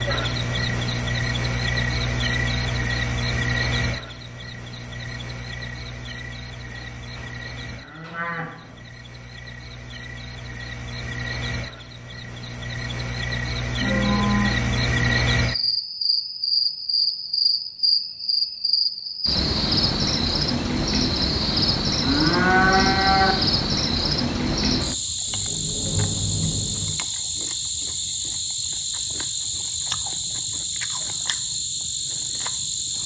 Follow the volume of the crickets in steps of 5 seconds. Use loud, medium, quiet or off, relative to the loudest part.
loud, quiet, medium, loud, loud, loud, loud.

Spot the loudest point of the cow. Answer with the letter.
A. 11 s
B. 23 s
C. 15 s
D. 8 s
B.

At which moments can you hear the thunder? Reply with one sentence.
The thunder can be heard from 25.2 to 26.9 s.